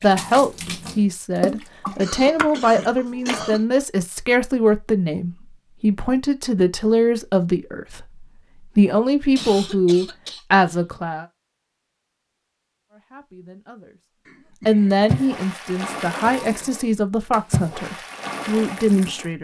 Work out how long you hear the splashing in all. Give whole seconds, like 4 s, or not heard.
8 s.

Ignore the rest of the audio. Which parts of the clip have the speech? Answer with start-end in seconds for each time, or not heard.
0.0-11.2, 12.9-14.0, 14.7-19.3.